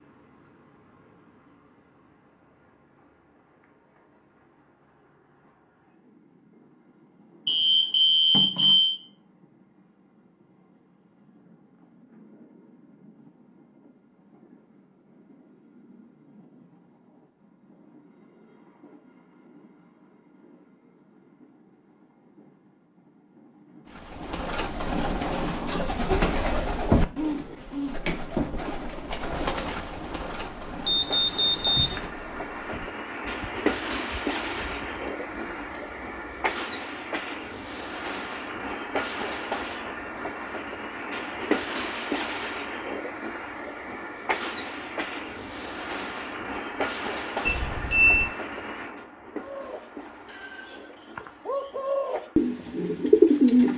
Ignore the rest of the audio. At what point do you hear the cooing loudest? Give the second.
53 s.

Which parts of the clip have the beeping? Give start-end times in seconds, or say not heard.
7.5-9.0, 30.9-32.0, 47.5-48.3.